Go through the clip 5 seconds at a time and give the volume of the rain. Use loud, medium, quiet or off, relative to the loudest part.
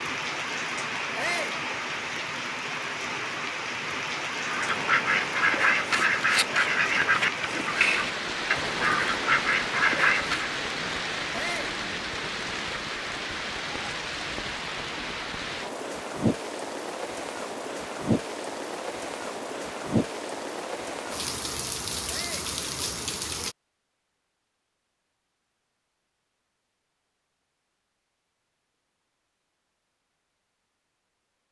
loud, loud, loud, loud, loud, off, off.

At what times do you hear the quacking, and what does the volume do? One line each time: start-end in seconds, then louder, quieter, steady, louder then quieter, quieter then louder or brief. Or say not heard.
4.5-10.5 steady.